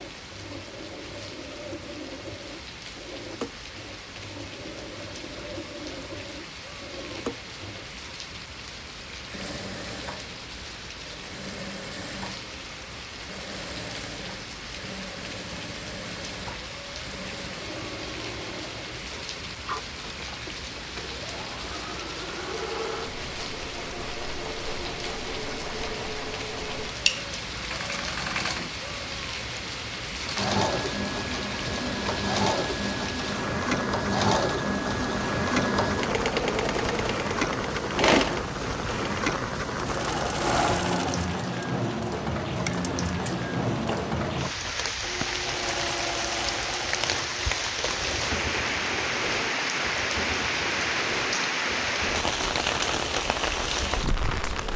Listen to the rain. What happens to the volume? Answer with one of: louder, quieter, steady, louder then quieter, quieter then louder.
louder.